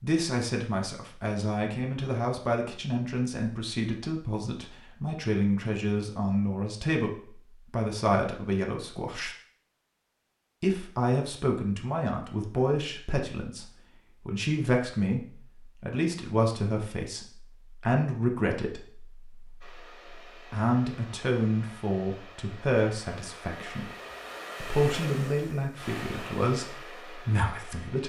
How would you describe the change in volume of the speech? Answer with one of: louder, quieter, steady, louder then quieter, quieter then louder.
steady.